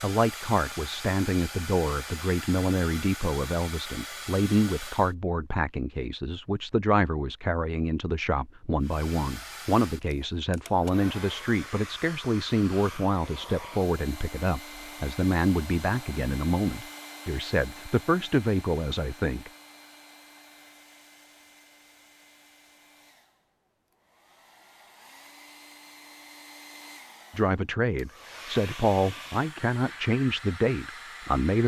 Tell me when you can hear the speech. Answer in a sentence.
You can hear the speech from 0.0 to 19.5 s and from 27.4 to 31.6 s.